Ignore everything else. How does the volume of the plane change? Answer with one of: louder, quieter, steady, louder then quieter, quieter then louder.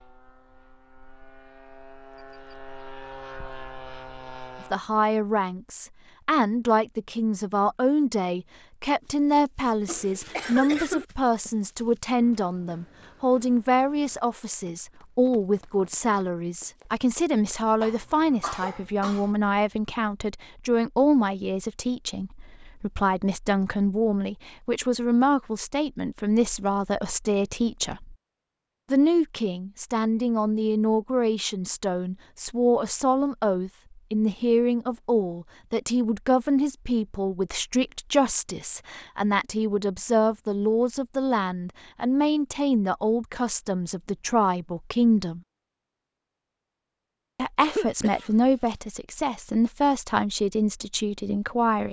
louder.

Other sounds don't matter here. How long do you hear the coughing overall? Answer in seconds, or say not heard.
4 s.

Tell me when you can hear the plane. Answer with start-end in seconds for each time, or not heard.
0.0-4.8.